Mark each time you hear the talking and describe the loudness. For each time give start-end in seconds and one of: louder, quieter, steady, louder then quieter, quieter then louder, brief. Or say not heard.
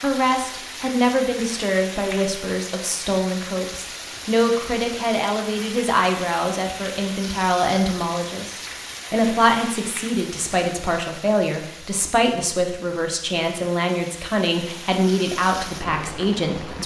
0.0-16.8 steady.